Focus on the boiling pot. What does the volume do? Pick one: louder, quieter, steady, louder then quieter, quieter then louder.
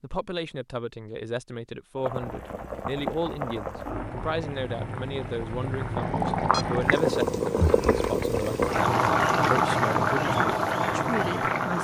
louder.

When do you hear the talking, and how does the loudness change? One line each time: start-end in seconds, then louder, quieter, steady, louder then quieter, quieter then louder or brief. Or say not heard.
0.0-11.7 steady.